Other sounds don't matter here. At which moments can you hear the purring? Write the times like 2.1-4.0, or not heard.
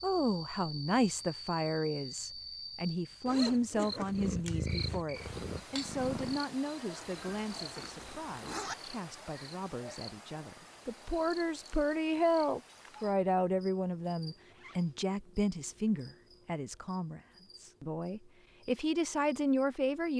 4.1-6.5.